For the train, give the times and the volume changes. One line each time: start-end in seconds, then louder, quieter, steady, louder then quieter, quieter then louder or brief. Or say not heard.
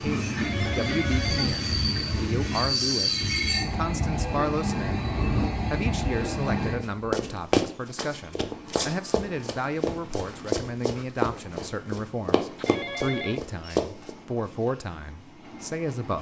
0.0-16.1 quieter.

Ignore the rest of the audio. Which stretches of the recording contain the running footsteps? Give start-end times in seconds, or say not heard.
6.6-14.1.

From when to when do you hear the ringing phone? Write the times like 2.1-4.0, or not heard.
0.3-1.6, 12.6-13.4.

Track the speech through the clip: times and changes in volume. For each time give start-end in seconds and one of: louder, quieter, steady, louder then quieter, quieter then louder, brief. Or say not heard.
0.0-16.1 steady.